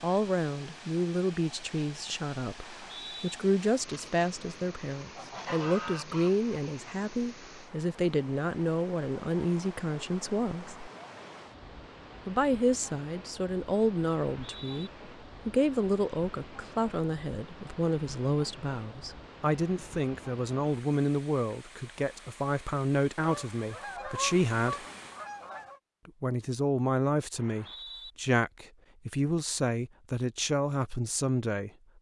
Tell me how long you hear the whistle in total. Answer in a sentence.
You can hear the whistle for 2 seconds altogether.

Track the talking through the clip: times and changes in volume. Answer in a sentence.
The talking can be heard from 0.0 to 10.9 s, at a steady volume; from 12.2 to 24.9 s, at a steady volume; and from 26.1 to 31.7 s, at a steady volume.